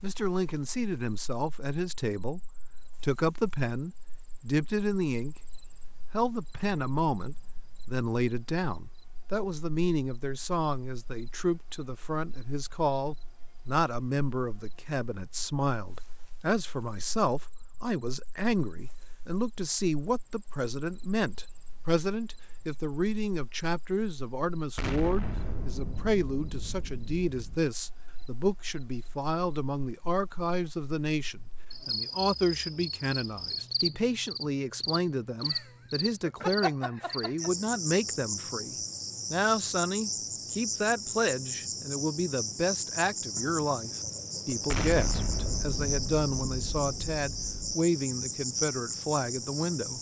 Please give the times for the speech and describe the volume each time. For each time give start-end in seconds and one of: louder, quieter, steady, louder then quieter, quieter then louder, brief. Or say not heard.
0.0-2.4 brief
3.0-49.9 steady.